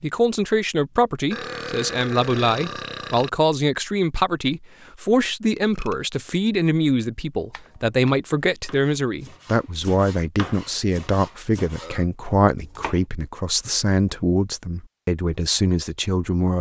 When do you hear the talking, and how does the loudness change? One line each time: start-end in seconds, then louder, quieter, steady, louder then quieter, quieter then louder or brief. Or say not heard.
0.0-16.5 steady.